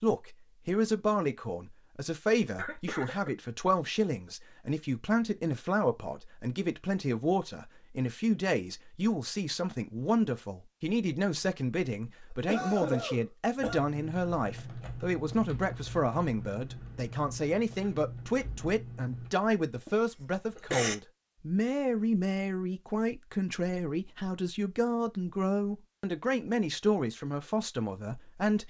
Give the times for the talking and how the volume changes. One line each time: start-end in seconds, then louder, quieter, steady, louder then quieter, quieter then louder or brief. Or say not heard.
0.0-28.6 steady.